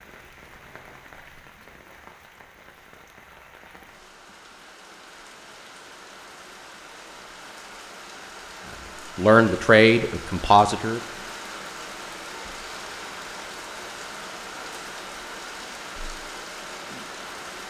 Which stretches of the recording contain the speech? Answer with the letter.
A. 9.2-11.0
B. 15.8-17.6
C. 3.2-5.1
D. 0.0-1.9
A.